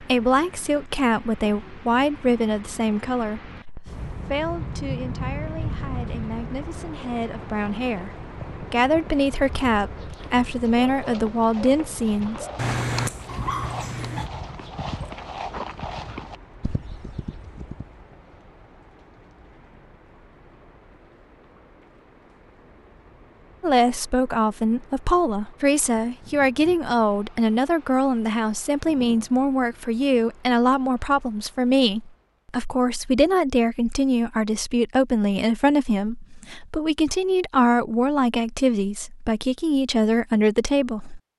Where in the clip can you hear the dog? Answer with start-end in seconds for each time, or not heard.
12.6-14.3.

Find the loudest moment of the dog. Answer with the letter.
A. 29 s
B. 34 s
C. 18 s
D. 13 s
D.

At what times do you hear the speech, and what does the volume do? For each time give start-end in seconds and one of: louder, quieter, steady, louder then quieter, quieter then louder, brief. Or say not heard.
0.0-12.4 quieter then louder
23.6-41.3 steady.